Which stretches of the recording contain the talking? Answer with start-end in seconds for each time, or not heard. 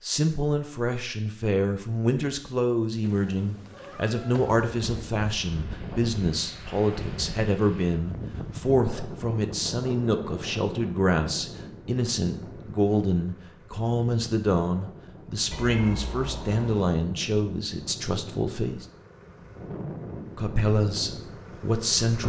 0.0-18.9, 20.4-22.2.